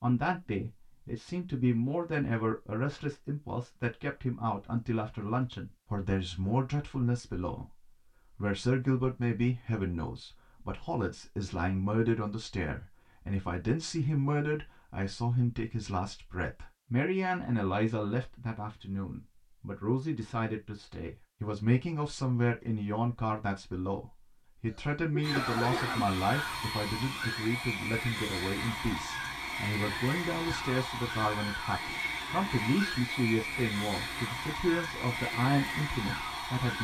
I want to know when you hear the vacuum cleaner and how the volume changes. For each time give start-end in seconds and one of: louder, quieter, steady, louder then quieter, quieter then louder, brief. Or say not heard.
25.2-36.8 steady.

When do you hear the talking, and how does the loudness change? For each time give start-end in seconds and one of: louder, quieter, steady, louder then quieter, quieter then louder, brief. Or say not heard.
0.0-7.7 steady
8.3-36.8 steady.